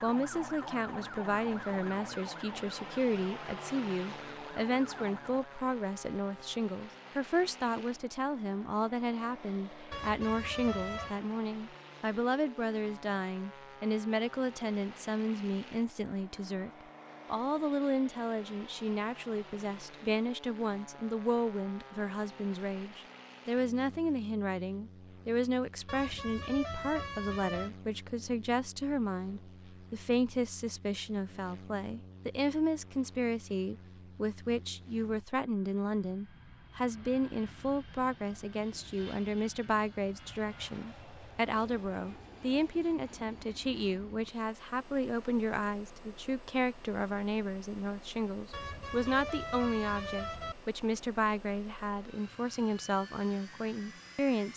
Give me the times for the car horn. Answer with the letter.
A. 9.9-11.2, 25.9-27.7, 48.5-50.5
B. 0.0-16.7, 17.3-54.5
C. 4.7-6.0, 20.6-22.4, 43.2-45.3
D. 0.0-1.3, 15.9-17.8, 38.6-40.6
A.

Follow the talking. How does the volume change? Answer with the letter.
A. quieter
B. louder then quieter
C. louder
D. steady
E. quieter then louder
D.